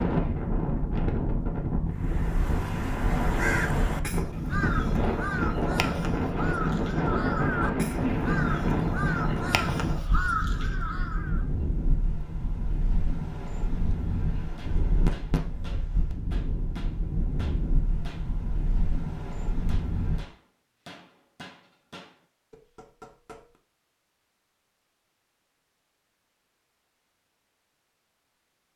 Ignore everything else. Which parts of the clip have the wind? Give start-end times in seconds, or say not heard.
0.0-20.2.